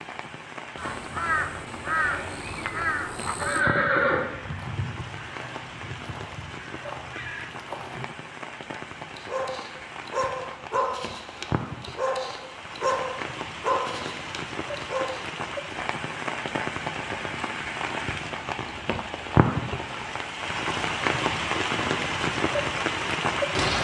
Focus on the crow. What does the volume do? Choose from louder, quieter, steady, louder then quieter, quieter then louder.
quieter.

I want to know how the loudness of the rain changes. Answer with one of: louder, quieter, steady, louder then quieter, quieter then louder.
louder.